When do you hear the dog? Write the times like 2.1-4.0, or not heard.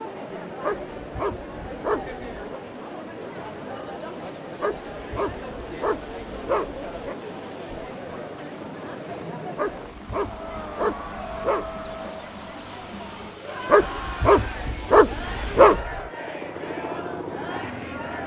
0.6-2.6, 4.6-7.2, 9.6-12.1, 13.7-16.1.